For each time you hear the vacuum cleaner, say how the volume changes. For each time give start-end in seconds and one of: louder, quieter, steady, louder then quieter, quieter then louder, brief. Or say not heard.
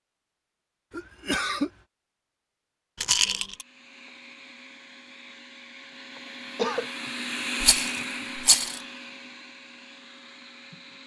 3.5-11.0 louder then quieter.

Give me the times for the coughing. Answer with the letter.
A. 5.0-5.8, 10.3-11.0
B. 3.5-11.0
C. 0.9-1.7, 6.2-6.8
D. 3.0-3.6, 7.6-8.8
C.